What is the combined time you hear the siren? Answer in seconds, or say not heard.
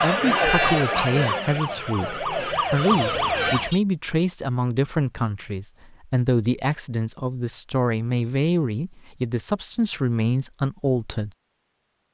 4 s.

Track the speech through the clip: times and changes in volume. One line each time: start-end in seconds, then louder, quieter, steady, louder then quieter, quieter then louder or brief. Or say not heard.
0.0-11.3 steady.